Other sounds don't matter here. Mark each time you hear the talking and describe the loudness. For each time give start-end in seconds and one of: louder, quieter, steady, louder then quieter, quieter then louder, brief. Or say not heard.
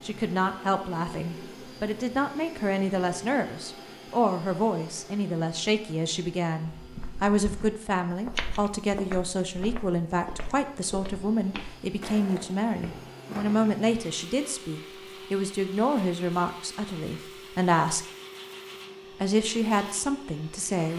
0.0-18.1 steady
19.1-20.9 brief.